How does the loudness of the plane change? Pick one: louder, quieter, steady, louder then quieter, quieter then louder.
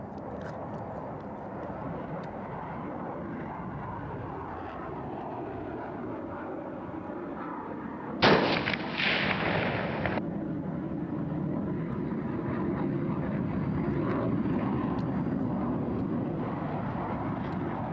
louder.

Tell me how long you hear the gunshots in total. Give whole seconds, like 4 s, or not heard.
2 s.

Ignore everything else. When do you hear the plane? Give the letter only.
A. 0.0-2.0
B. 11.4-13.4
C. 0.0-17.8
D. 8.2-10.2
C.